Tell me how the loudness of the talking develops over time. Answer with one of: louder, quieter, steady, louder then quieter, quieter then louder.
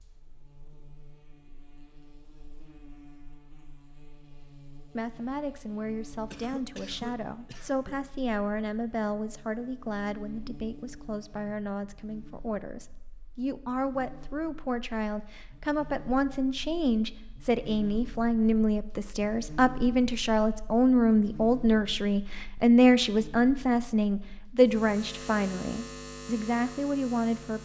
louder.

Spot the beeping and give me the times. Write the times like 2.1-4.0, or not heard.
not heard.